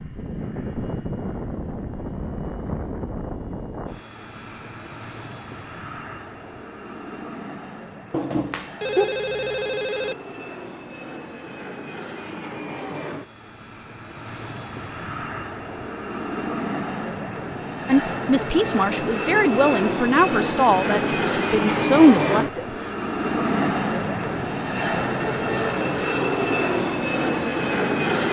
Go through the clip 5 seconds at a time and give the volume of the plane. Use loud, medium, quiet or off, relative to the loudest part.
medium, quiet, quiet, medium, loud, loud.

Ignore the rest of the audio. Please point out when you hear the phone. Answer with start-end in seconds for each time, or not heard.
8.1-10.2.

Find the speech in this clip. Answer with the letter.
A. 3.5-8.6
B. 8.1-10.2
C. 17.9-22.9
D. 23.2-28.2
C.